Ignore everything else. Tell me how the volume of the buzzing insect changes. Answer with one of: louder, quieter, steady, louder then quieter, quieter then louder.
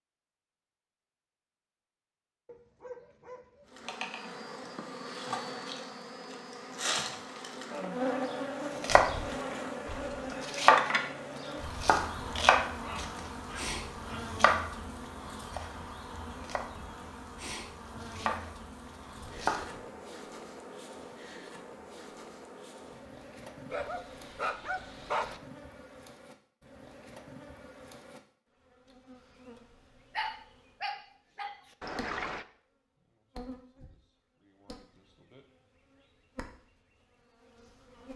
quieter.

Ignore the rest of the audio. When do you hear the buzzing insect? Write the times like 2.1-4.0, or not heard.
3.7-38.1.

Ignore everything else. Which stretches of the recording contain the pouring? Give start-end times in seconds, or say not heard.
31.8-32.5.